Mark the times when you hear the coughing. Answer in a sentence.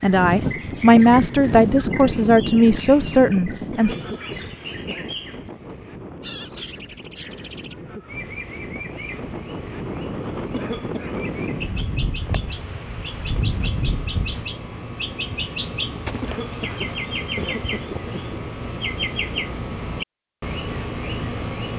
You can hear the coughing from 3.7 to 5.2 s, from 10.5 to 11.2 s and from 16.2 to 18.1 s.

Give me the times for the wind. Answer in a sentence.
The wind can be heard from 0.0 to 14.5 s.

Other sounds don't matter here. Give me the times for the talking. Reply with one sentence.
You can hear the talking from 0.0 to 4.0 s.